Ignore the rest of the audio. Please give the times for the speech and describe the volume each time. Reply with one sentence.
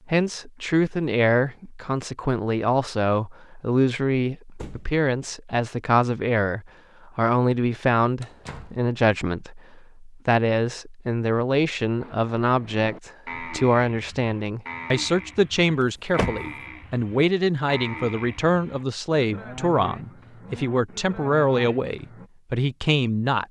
You can hear the speech from 0.1 to 23.4 s, at a steady volume.